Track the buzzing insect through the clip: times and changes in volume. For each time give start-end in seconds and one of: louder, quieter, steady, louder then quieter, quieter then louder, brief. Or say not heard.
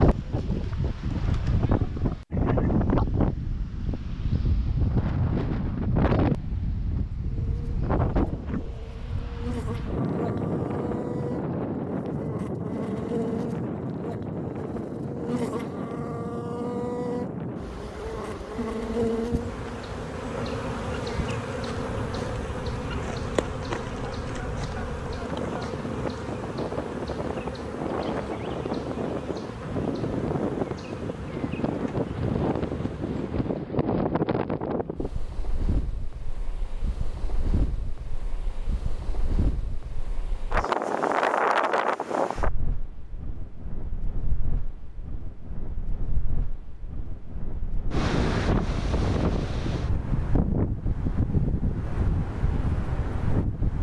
7.3-33.7 louder then quieter.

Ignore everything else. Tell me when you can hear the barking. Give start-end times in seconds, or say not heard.
not heard.